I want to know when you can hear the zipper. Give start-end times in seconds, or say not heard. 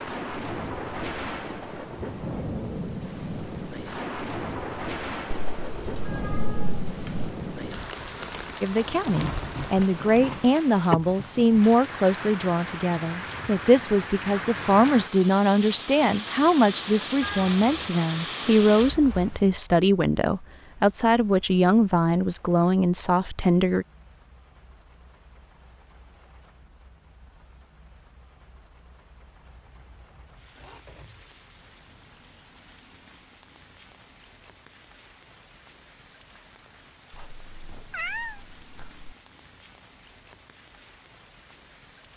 29.4-31.2.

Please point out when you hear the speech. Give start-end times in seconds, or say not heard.
8.6-23.9.